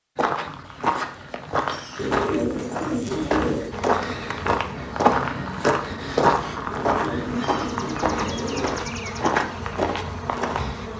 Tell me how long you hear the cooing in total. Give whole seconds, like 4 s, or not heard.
4 s.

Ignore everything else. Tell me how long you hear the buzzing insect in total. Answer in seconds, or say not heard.
7 s.